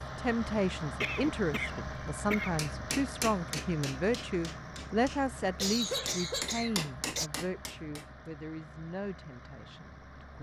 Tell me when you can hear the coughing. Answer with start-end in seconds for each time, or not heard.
1.0-2.6, 5.5-7.3.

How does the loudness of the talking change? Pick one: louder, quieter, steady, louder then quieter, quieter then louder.
quieter.